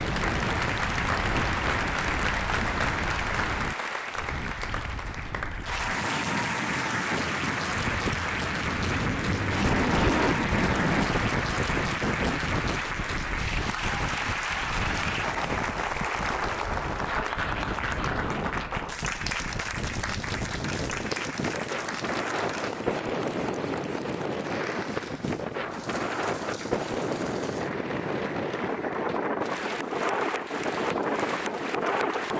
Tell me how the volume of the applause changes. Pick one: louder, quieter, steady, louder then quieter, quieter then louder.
quieter.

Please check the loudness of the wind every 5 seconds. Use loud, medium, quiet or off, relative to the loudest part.
medium, loud, loud, medium, loud, loud, loud.